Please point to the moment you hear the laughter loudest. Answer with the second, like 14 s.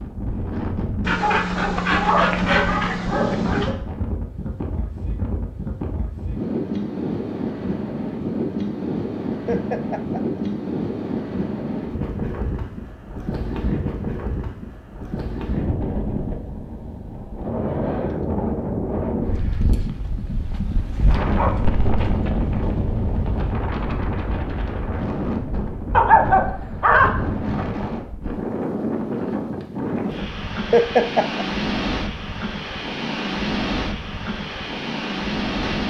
31 s.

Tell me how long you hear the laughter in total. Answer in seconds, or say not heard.
2 s.